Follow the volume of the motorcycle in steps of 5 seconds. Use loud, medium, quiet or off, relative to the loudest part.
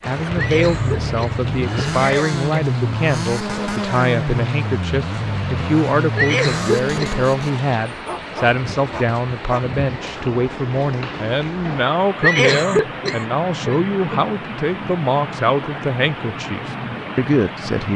loud, loud, off, off.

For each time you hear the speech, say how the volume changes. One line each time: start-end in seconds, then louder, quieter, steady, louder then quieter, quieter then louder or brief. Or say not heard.
0.1-17.9 steady.